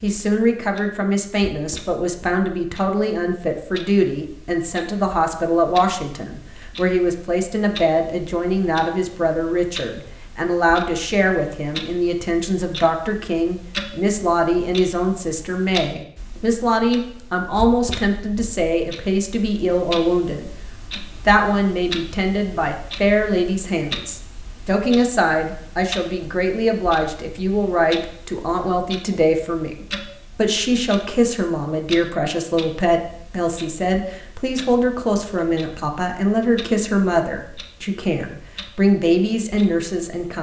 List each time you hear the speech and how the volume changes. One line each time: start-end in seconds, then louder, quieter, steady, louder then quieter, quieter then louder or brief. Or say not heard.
0.0-40.3 steady.